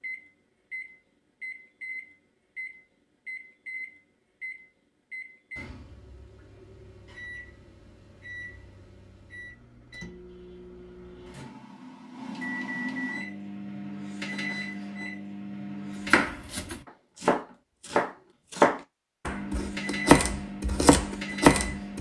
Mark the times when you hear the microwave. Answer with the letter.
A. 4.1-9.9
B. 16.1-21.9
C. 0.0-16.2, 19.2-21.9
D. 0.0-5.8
C.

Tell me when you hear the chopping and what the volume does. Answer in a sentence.
You can hear the chopping from 16.1 to 21.9 s, getting louder.